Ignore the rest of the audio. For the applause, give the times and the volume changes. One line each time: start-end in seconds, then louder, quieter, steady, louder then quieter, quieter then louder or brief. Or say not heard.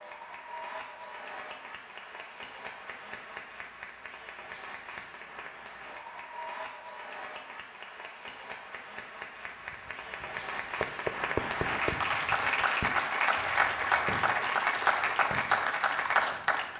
0.0-16.7 louder.